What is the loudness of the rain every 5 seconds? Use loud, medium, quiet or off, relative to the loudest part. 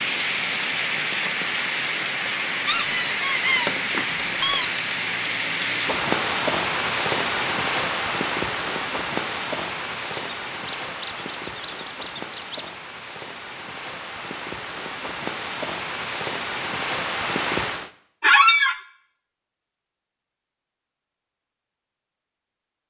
loud, loud, medium, loud, off.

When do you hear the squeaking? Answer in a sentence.
The squeaking can be heard from 2.6 to 4.7 s, from 10.1 to 12.7 s and from 18.2 to 18.8 s.